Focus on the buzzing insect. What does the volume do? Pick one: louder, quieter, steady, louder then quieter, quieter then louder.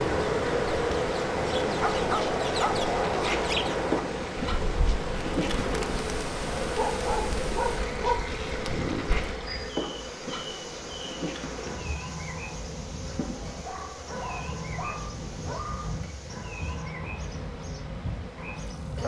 quieter.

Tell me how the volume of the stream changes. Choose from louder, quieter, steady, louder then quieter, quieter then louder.
quieter.